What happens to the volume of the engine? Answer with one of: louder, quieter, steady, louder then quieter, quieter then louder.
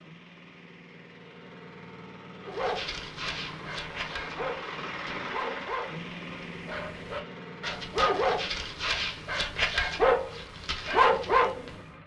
louder then quieter.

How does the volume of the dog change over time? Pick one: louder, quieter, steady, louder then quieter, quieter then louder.
louder.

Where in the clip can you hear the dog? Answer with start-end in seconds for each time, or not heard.
2.5-11.8.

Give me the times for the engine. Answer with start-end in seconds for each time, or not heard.
0.0-12.0.